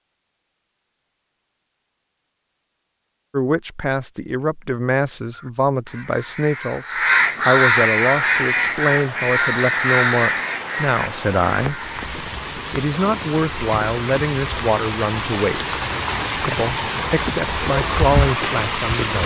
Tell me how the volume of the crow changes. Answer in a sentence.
The volume of the crow goes up, then down.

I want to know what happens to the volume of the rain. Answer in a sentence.
The loudness of the rain goes up.